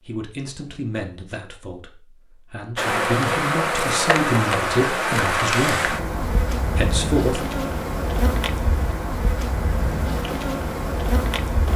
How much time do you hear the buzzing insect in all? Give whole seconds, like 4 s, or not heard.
9 s.